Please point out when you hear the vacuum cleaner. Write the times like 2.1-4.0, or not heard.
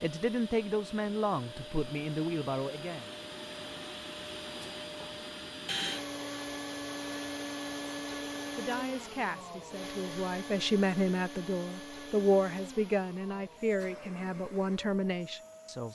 0.0-15.9.